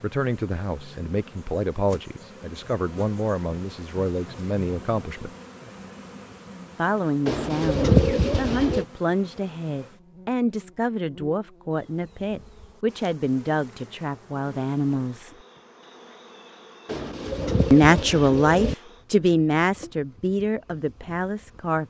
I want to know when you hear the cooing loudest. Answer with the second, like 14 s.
8 s.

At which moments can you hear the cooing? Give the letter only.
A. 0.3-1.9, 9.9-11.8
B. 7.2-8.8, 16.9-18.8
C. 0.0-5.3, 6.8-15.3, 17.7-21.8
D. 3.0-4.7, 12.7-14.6
B.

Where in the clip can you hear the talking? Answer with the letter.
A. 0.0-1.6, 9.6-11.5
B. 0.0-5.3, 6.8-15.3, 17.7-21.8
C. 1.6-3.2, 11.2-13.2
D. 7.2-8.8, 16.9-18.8
B.